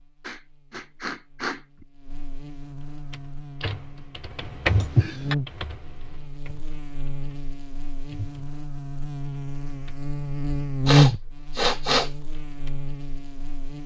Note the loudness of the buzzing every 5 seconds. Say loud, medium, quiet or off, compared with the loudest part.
quiet, medium, loud.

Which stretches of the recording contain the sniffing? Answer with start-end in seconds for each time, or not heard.
0.2-1.9, 4.7-5.3, 10.8-12.1.